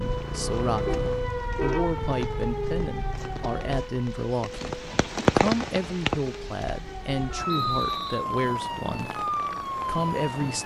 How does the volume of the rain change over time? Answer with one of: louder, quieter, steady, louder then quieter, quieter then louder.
louder then quieter.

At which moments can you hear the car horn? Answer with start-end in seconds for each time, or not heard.
0.8-2.4.